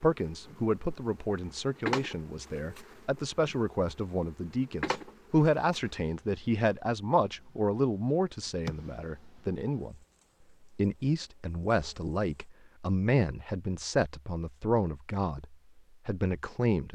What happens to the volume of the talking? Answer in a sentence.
The volume of the talking stays about the same.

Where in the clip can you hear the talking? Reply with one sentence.
You can hear the talking from 0.0 to 9.9 s and from 10.8 to 16.8 s.